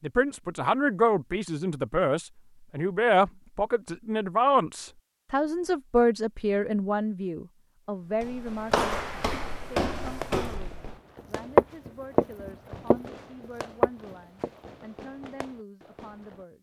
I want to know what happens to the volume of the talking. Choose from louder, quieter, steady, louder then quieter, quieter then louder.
quieter.